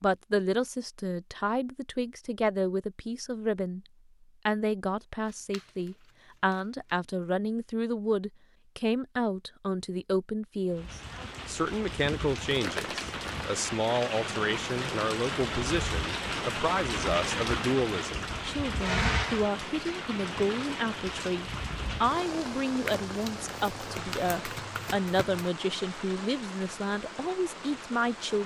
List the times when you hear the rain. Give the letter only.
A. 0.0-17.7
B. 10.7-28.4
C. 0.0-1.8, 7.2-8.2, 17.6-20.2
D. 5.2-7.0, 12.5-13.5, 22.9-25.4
B.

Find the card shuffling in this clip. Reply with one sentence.
The card shuffling can be heard from 5.2 to 7.0 s, from 12.5 to 13.5 s and from 22.9 to 25.4 s.